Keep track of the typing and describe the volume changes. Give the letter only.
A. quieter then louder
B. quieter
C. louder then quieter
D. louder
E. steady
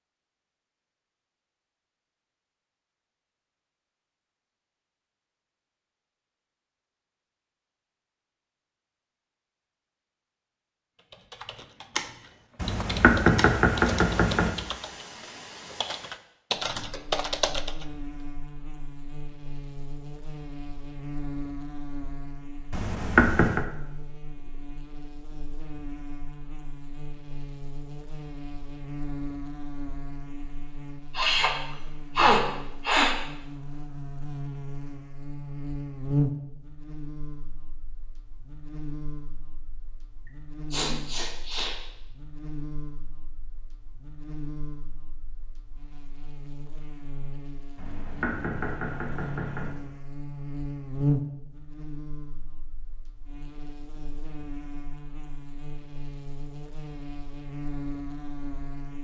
D.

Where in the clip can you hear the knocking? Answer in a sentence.
The knocking can be heard from 12.6 to 14.5 s, from 22.7 to 23.6 s and from 47.8 to 49.7 s.